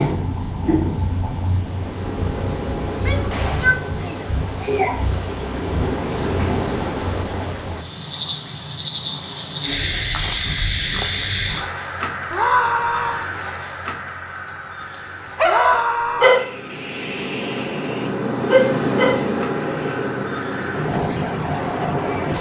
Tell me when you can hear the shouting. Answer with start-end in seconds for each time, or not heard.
2.9-4.3, 12.3-13.3, 15.4-16.3.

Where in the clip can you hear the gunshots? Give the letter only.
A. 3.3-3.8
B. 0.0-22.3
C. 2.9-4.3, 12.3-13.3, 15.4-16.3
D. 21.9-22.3
A.